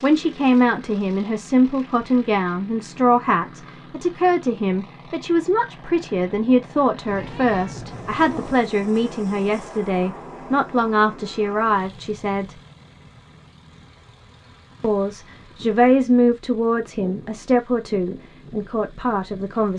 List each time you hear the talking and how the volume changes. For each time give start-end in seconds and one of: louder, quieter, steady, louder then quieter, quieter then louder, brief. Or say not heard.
0.0-12.6 steady
14.8-19.7 quieter.